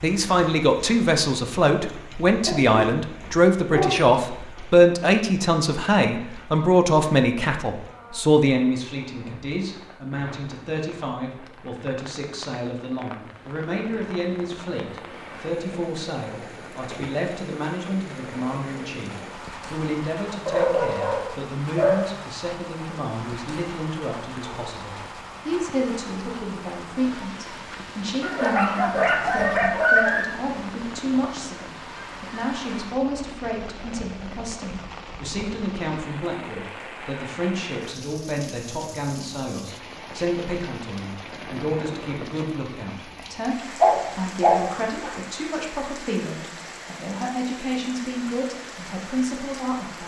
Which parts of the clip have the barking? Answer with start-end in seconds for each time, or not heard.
2.5-4.5, 20.4-22.1, 28.2-30.2, 43.8-45.1.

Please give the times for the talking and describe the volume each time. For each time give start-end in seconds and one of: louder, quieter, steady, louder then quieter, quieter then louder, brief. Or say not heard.
0.0-50.0 quieter.